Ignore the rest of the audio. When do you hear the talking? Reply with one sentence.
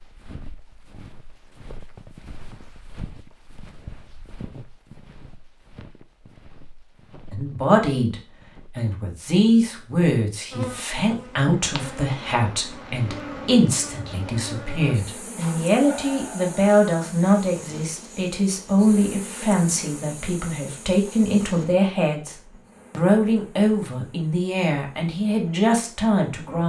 The talking can be heard from 7.3 to 26.6 s.